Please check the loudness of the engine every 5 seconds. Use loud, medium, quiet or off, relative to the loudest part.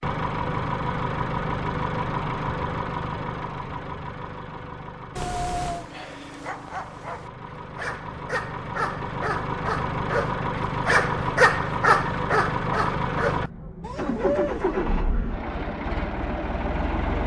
loud, medium, loud, loud.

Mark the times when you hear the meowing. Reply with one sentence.
You can hear the meowing from 5.2 to 5.8 s.